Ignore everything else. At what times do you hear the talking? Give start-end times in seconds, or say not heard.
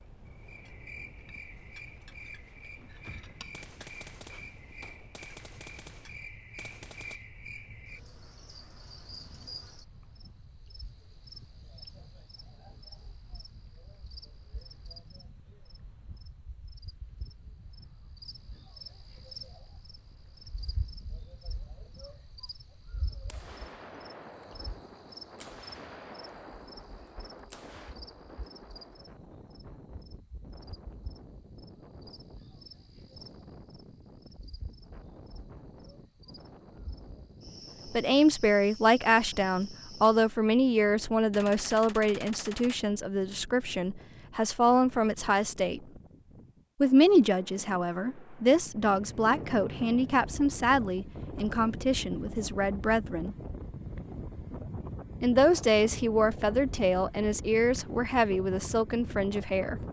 37.9-45.8, 46.8-53.4, 55.2-59.8.